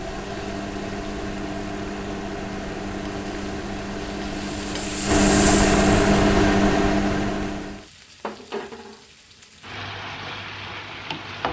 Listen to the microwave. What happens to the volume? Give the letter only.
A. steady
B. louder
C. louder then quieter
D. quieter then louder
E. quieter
B.